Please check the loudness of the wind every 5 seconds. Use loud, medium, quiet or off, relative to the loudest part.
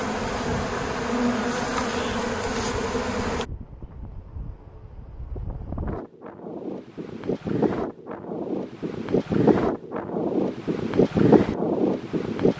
quiet, medium, loud.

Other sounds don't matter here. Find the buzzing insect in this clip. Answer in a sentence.
The buzzing insect can be heard from 0.0 to 3.5 s.